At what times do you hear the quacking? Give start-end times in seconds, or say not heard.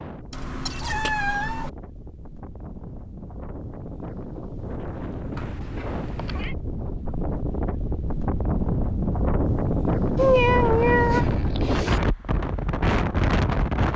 not heard.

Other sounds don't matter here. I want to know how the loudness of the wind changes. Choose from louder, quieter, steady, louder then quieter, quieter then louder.
louder.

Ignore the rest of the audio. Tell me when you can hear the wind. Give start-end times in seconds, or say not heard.
0.0-13.9.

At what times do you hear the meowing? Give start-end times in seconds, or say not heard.
0.3-1.7, 5.3-6.5, 10.2-12.0.